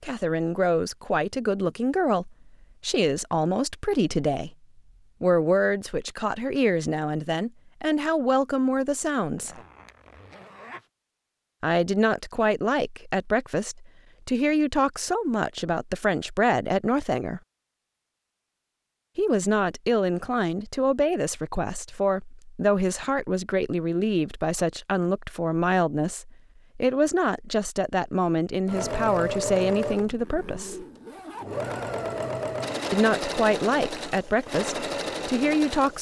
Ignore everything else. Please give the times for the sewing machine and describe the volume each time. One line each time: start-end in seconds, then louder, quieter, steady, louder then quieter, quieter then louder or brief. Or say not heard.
28.6-35.9 steady.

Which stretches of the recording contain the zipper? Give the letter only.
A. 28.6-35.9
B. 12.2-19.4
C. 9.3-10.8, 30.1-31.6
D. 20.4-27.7
C.